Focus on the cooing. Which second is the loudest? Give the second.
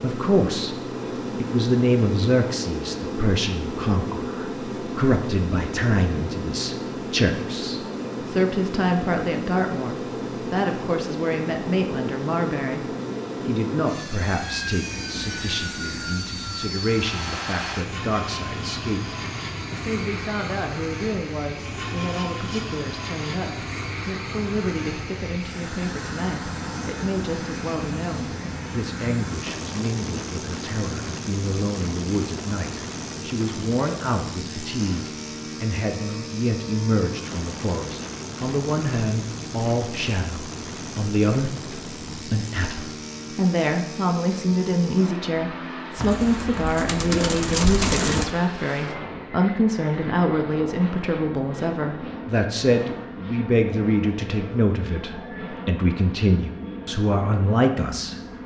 48 s.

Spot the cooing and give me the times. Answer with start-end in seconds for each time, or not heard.
46.0-48.3.